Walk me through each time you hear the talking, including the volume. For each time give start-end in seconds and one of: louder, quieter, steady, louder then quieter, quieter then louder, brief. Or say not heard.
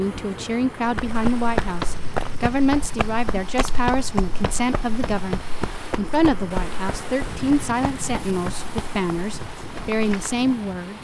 0.0-10.9 steady.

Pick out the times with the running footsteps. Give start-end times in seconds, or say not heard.
0.8-10.4.